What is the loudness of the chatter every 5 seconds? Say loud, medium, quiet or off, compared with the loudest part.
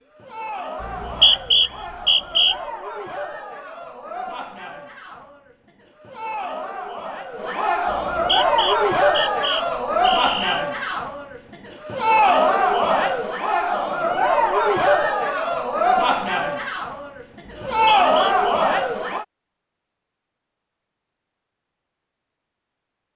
quiet, loud, loud, loud, off.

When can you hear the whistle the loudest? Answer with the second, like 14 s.
1 s.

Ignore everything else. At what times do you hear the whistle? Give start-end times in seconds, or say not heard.
0.8-2.5, 7.9-10.6, 17.7-18.4.